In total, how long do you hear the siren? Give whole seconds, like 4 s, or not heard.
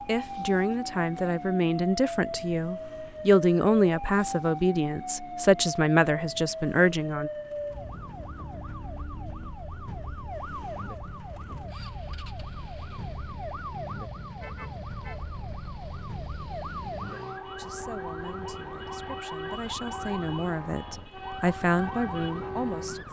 23 s.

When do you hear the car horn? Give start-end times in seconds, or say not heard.
14.3-15.2.